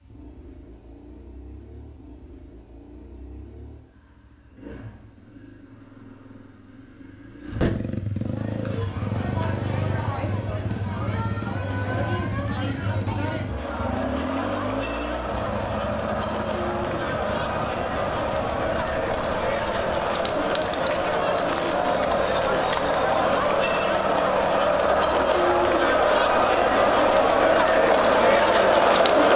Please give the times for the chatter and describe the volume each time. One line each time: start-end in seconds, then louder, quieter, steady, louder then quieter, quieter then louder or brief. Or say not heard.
8.2-29.3 louder.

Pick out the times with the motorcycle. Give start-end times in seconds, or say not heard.
0.0-29.3.